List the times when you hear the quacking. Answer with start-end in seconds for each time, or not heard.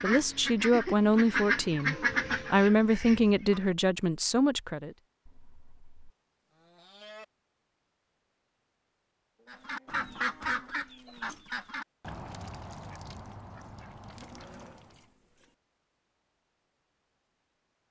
0.0-3.7, 9.5-15.1.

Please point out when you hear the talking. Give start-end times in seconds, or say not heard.
0.0-5.0.